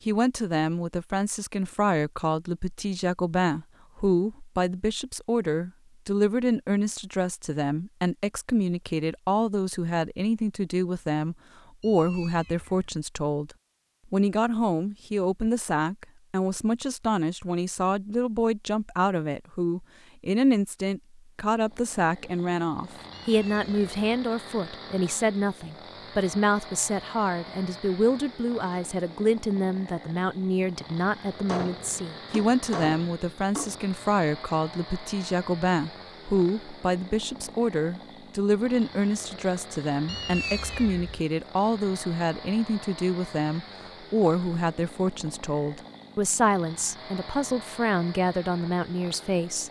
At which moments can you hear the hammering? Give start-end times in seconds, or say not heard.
31.4-33.9.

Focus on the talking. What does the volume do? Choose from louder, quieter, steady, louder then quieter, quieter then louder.
steady.